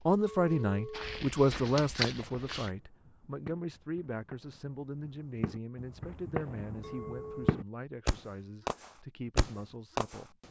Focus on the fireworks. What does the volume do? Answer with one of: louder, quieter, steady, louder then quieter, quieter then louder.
louder.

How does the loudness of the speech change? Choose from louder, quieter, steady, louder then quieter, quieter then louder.
quieter.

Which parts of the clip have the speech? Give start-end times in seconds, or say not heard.
0.1-10.4.